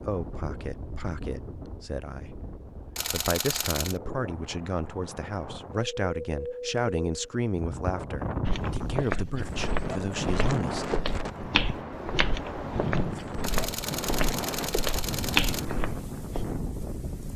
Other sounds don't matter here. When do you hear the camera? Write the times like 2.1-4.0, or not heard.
3.0-4.0, 13.4-15.7.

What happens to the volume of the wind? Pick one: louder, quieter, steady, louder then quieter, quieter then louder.
louder.